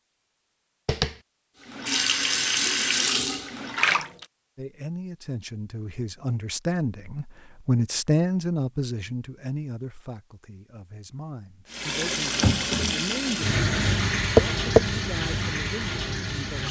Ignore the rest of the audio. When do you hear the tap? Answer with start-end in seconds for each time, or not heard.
1.6-4.2, 11.7-16.6.